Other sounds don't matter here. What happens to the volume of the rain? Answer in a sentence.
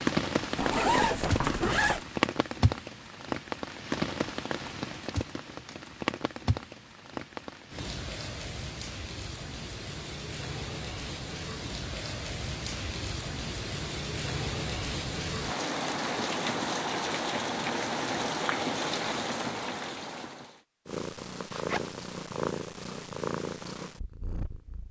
The volume of the rain goes down, then up.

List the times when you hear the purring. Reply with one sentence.
You can hear the purring from 20.9 to 24.8 s.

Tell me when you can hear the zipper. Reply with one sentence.
You can hear the zipper from 0.6 to 2.0 s and from 21.4 to 22.0 s.